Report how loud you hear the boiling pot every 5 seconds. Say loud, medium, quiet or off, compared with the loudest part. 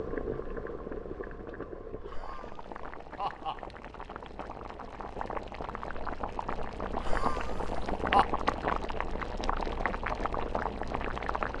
medium, loud, loud.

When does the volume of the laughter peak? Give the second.
8 s.